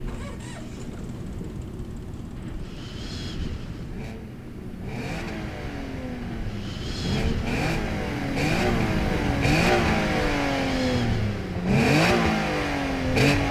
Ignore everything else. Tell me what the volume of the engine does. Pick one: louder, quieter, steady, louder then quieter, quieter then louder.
louder.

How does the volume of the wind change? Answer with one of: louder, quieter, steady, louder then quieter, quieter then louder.
louder.